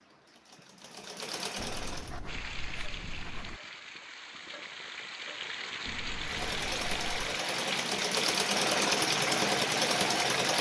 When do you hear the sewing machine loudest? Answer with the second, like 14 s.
9 s.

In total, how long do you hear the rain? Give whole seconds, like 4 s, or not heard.
8 s.